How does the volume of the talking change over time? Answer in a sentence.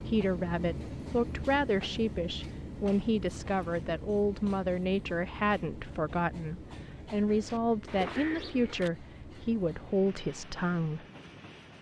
The loudness of the talking stays about the same.